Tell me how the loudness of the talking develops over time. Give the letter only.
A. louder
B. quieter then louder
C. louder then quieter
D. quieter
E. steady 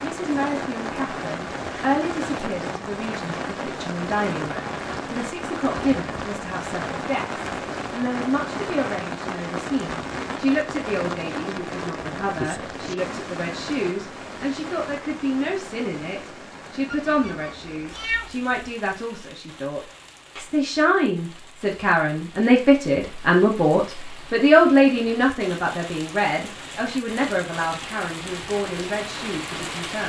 A.